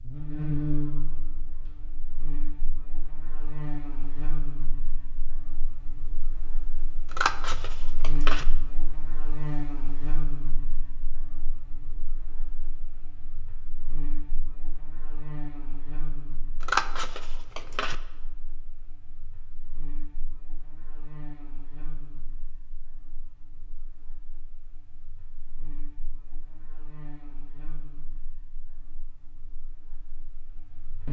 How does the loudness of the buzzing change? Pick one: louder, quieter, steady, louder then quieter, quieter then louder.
quieter.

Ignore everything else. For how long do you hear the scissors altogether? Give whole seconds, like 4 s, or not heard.
3 s.